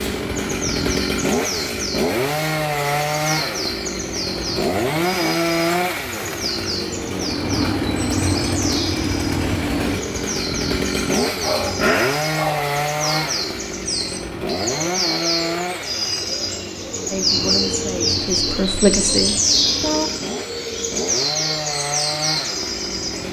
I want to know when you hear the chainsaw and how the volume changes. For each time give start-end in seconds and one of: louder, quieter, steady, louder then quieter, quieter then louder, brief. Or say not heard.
0.0-23.2 quieter.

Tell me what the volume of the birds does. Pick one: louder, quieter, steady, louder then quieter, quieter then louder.
louder.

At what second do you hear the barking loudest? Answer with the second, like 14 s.
12 s.